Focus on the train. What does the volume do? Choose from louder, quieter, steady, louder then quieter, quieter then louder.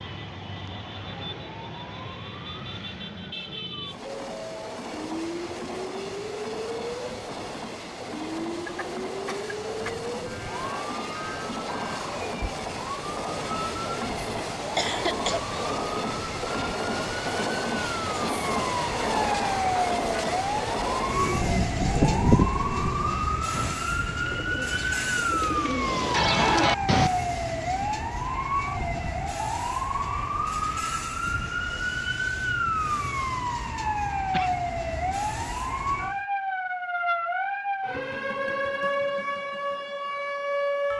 louder then quieter.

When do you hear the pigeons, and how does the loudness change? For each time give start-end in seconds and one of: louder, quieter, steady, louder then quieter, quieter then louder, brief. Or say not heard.
21.1-27.1 quieter then louder.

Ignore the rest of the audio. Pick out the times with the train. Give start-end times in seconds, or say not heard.
3.8-36.2.